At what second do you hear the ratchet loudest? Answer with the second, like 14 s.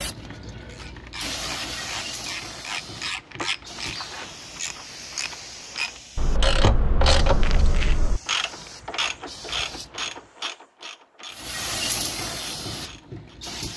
7 s.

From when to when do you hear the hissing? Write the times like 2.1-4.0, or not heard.
0.0-10.1, 11.3-13.7.